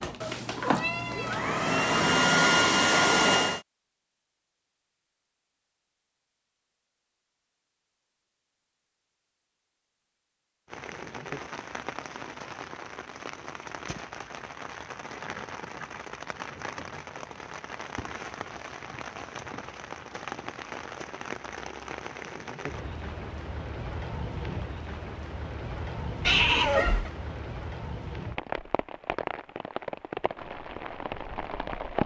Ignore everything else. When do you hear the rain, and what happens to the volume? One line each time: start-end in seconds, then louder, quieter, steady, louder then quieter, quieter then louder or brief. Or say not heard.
10.7-32.0 steady.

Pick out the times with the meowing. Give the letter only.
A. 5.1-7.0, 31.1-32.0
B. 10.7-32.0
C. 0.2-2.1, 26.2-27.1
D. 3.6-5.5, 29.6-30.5
C.